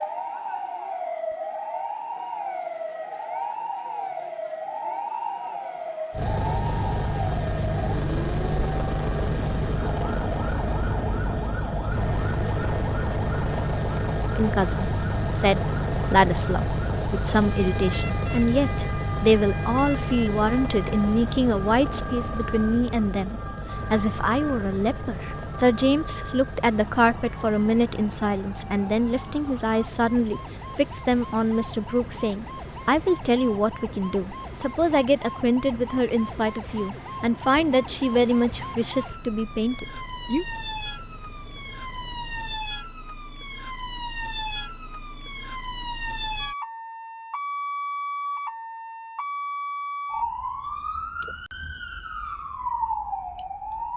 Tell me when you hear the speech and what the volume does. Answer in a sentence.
The speech can be heard from 14.3 to 40.5 s, at a steady volume.